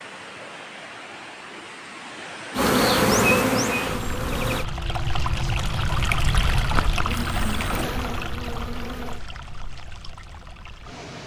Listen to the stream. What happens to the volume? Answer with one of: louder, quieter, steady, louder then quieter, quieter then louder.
louder then quieter.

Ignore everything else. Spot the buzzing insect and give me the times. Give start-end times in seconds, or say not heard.
2.5-4.7, 7.0-9.2.